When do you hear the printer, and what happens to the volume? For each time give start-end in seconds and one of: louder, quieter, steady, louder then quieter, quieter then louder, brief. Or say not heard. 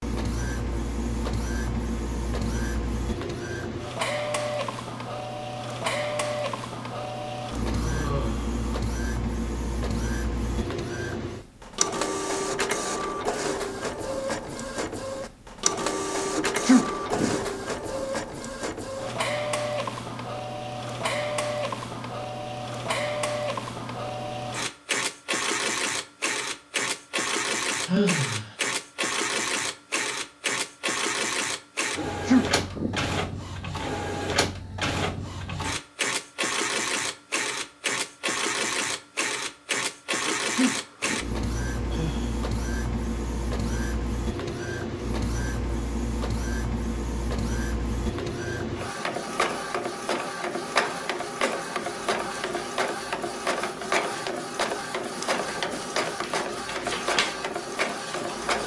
0.0-58.6 steady.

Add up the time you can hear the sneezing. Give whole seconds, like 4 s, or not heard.
3 s.